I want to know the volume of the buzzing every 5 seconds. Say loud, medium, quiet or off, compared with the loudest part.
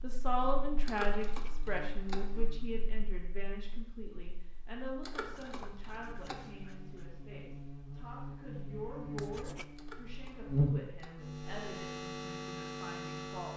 quiet, medium, loud.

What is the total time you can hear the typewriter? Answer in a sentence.
You can hear the typewriter for 4 seconds altogether.